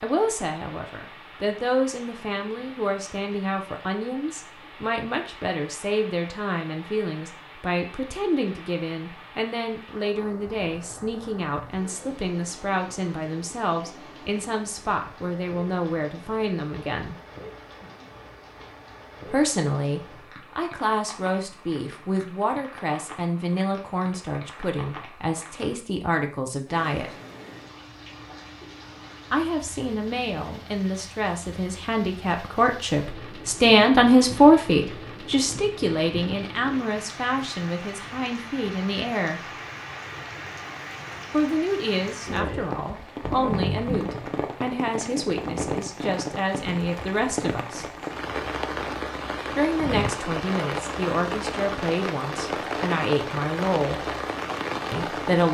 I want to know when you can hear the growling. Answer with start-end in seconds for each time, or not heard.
43.2-44.3.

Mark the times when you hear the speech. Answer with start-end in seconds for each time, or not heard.
0.0-17.1, 19.2-27.1, 29.3-39.5, 41.3-47.9, 49.5-54.0, 54.9-55.5.